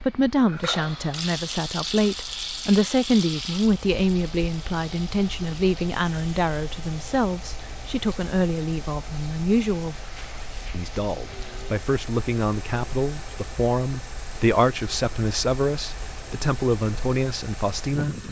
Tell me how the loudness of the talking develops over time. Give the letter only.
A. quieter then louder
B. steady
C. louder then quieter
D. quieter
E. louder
B.